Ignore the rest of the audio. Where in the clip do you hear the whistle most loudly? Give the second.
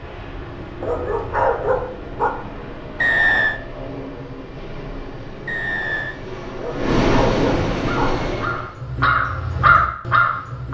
3 s.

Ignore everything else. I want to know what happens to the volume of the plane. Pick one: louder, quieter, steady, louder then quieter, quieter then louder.
louder.